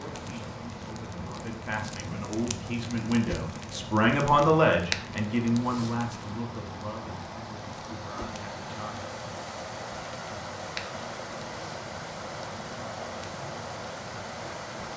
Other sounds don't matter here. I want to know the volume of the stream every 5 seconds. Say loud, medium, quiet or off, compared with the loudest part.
medium, loud, loud.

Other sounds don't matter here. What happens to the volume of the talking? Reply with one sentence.
The volume of the talking goes up, then down.